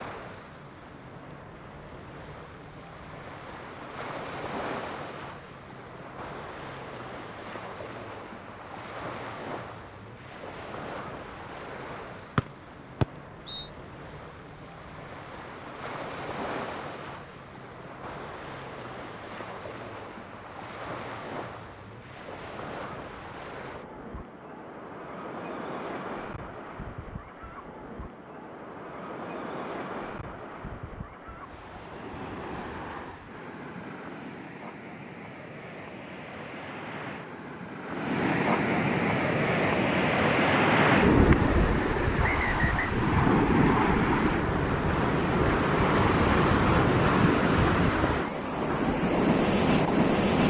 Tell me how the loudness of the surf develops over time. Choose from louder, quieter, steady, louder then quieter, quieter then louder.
louder.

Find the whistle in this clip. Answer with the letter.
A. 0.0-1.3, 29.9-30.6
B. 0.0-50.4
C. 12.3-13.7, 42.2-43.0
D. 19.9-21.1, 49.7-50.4
C.